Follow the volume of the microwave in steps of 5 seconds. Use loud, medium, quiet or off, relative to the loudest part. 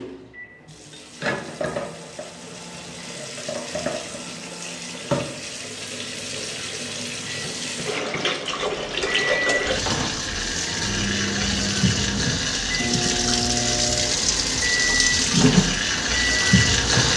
quiet, medium, loud, loud.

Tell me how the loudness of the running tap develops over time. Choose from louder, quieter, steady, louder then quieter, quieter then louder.
louder.